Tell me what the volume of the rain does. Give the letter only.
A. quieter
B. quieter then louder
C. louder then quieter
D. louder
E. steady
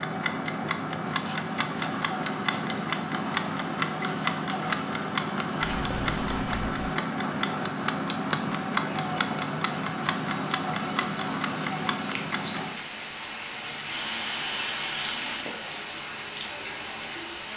D.